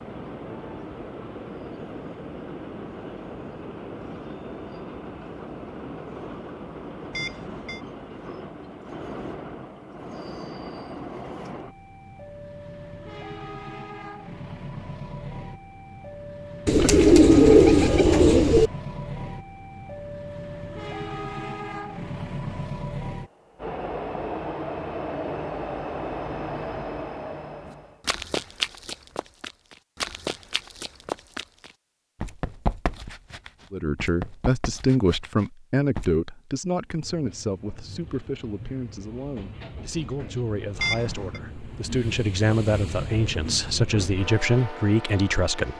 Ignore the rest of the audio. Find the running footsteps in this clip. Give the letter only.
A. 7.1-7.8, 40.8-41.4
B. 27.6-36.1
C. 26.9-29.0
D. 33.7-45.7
B.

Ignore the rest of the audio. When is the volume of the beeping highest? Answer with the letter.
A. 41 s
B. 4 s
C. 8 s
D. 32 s
A.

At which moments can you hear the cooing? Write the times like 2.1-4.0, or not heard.
16.6-18.7.